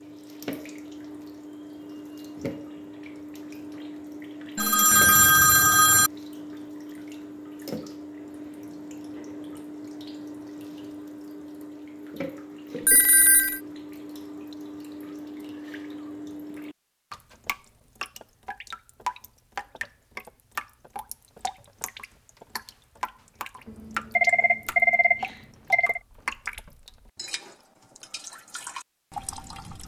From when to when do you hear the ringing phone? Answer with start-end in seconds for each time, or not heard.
4.5-6.1, 12.8-13.6, 23.6-26.0.